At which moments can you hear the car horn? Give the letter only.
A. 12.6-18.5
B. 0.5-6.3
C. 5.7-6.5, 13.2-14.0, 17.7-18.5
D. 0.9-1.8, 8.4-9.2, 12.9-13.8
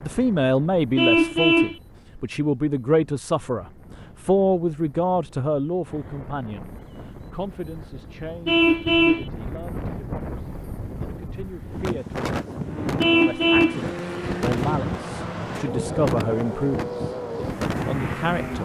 D.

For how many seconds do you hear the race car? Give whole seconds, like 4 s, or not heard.
6 s.